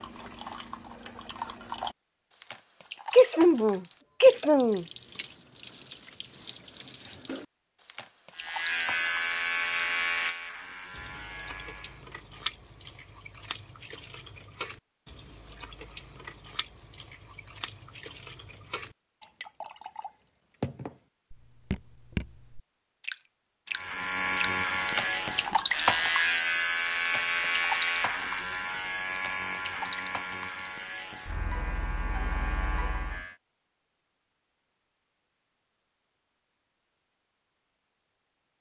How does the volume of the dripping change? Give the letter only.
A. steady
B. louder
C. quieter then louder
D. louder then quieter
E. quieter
B.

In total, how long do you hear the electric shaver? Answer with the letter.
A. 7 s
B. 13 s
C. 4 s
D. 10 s
B.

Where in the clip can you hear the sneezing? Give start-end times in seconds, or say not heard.
3.1-4.8.